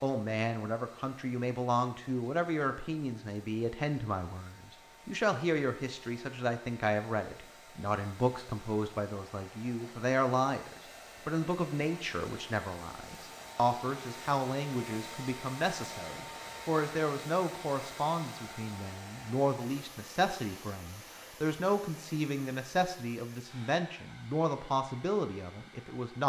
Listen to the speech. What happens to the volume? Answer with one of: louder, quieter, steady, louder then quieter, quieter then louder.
steady.